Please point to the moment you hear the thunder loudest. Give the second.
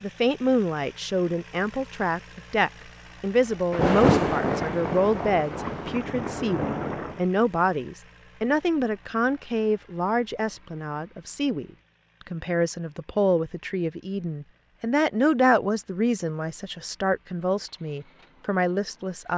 4 s.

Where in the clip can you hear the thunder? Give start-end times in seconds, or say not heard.
3.7-7.2.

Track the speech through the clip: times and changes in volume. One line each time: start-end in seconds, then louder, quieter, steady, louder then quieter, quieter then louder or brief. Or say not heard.
0.0-19.3 steady.